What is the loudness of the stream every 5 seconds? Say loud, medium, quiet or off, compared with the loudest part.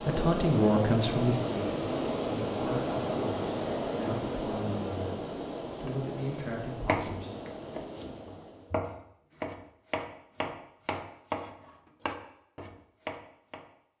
loud, medium, off.